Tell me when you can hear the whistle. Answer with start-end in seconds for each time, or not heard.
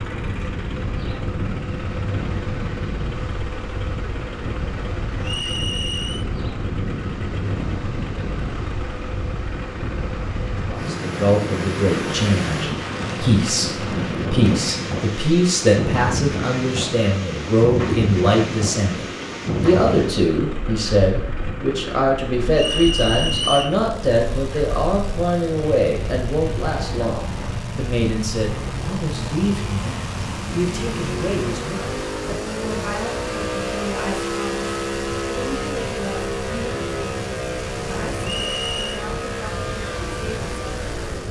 5.2-6.2, 22.6-23.8, 38.2-39.0.